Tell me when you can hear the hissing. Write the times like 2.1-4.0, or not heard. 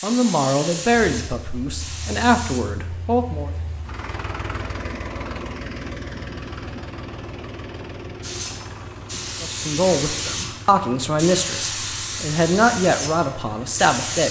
0.0-2.6, 8.2-14.2.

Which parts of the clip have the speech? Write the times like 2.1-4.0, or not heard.
0.0-3.5, 9.4-14.2.